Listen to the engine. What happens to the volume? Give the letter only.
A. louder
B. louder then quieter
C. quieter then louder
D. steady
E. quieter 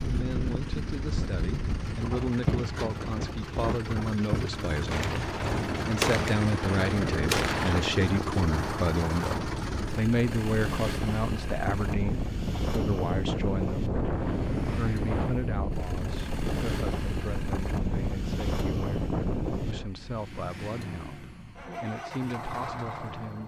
B.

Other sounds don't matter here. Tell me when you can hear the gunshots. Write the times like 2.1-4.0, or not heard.
4.9-7.9.